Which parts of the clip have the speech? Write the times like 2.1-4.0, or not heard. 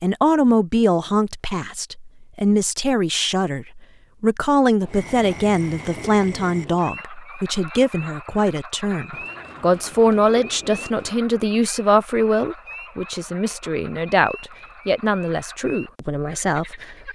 0.0-17.1.